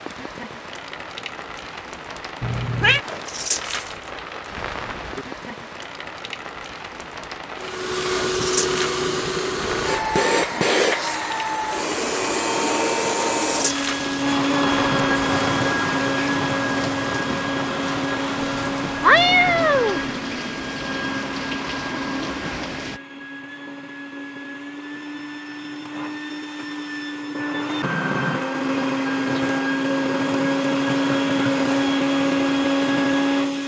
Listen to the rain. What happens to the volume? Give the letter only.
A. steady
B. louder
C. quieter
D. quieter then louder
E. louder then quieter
A.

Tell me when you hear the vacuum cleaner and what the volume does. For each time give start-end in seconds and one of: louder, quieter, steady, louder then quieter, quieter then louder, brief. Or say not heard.
7.5-33.6 quieter then louder.